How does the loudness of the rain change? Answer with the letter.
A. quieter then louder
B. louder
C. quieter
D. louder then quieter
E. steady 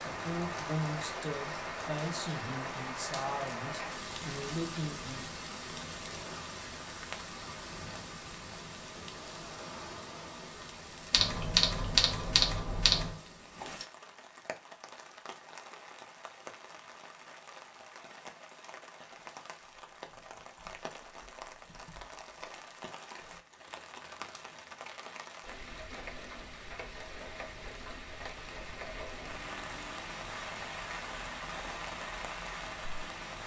A.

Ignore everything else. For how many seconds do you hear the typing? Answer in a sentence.
The typing can be heard for 2 seconds in total.